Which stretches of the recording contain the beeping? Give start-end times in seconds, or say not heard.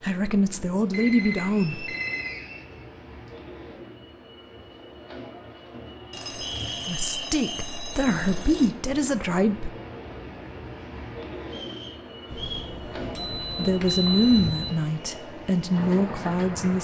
0.9-2.5, 6.1-8.7, 12.3-14.8.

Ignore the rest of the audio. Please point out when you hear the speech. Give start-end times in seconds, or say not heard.
0.0-1.9, 6.8-9.7, 13.6-16.7.